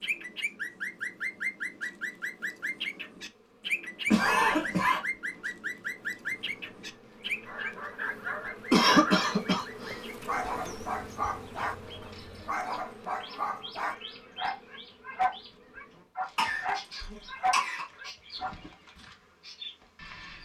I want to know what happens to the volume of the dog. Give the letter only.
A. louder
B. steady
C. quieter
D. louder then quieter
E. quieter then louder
B.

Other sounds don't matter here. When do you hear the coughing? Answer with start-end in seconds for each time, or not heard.
4.1-5.0, 8.7-10.0, 16.4-17.9.